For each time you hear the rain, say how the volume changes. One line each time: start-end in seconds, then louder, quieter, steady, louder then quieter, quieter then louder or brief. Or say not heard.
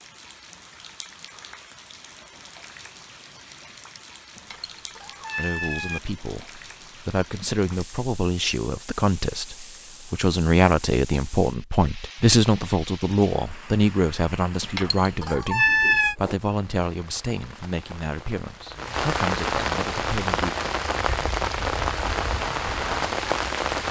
0.0-23.8 louder.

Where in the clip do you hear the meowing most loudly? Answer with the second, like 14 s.
16 s.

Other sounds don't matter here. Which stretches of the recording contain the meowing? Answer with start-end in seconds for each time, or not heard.
4.3-6.0, 14.6-16.1.